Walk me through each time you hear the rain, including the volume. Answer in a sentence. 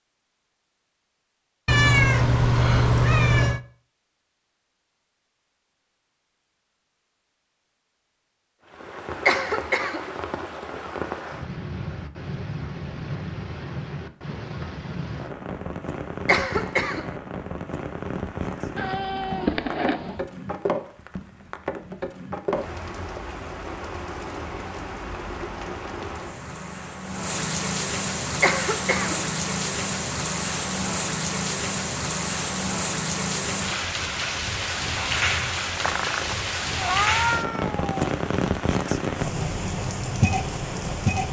You can hear the rain from 8.7 to 41.2 s, getting louder.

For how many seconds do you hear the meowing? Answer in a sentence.
You can hear the meowing for 6 seconds altogether.